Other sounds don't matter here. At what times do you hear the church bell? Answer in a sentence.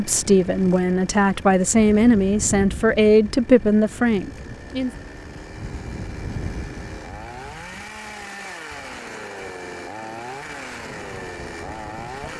You can't hear the church bell here.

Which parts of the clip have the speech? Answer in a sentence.
You can hear the speech from 0.0 to 4.9 s.